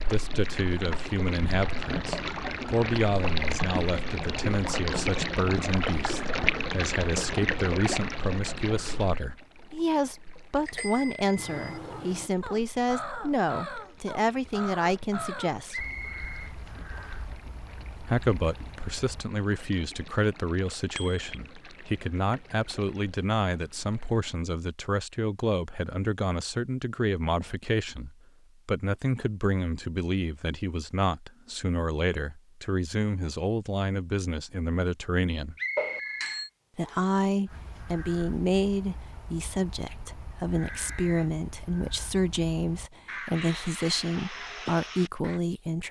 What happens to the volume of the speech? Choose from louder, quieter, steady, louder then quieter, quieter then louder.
steady.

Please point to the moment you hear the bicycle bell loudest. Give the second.
36 s.